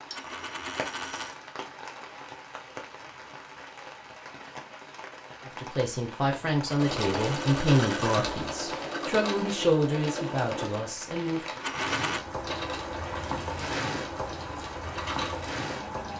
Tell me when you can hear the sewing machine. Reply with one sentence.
You can hear the sewing machine from 6.8 to 16.1 s.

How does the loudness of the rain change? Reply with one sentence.
The loudness of the rain goes up.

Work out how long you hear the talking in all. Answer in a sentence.
You can hear the talking for 6 seconds altogether.